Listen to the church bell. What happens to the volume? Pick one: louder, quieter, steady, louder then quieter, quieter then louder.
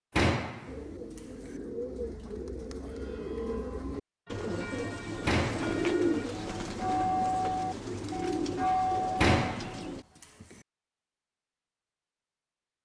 louder.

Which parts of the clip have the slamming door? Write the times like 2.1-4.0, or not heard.
0.1-1.5, 5.2-5.8, 9.2-10.6.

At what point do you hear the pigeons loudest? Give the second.
6 s.